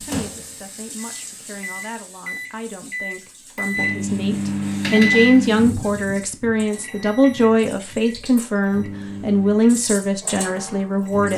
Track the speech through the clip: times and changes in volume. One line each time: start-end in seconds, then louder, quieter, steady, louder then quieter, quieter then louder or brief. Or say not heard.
0.0-11.3 louder.